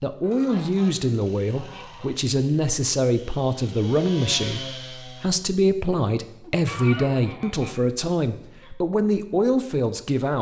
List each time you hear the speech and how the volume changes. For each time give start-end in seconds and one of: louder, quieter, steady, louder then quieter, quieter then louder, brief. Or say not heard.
0.0-10.3 steady.